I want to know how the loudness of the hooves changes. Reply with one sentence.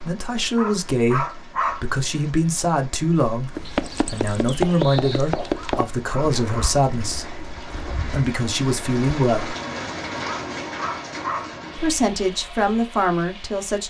The loudness of the hooves goes down.